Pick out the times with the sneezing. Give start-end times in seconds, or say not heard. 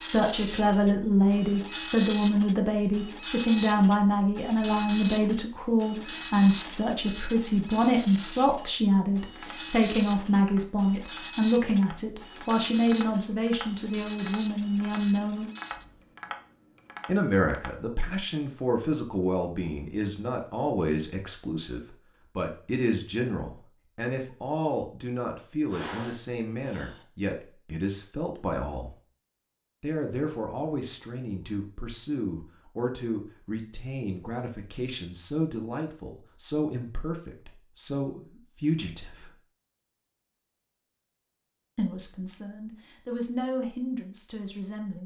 25.6-27.0.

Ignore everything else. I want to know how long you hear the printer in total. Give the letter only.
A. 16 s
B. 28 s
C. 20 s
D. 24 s
A.